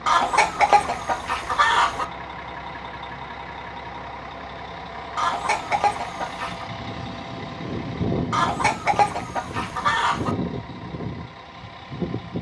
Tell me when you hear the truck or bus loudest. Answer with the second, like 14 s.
8 s.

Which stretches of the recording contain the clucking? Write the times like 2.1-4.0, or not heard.
0.1-2.0, 5.2-6.7, 8.3-10.3.